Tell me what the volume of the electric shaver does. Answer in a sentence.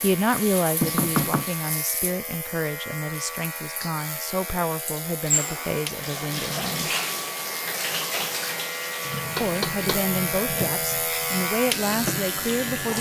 The loudness of the electric shaver goes up.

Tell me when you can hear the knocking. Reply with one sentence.
The knocking can be heard from 0.8 to 1.5 s and from 9.3 to 10.1 s.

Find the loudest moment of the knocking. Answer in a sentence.
The volume of the knocking peaks at 1 second.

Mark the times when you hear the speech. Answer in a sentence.
You can hear the speech from 0.0 to 6.9 s and from 9.4 to 12.9 s.